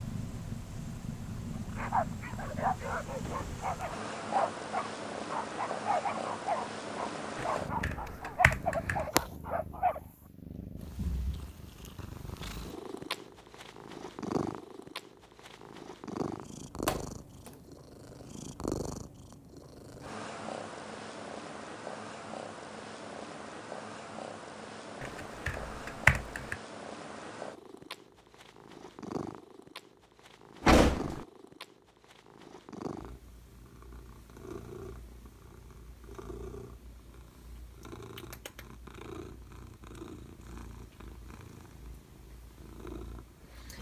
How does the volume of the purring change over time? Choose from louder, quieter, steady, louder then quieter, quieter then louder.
quieter.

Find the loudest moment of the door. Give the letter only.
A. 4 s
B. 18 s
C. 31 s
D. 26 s
C.